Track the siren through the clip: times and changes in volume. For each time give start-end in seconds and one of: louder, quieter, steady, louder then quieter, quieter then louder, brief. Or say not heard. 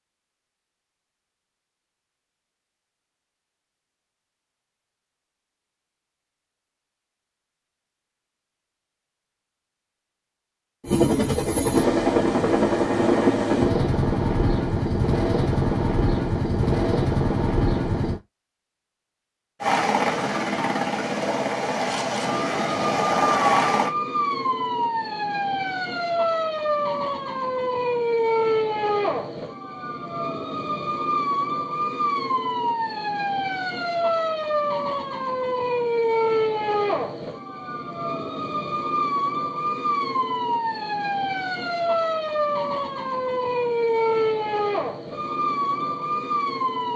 22.2-46.9 steady.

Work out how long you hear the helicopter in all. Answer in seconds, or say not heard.
12 s.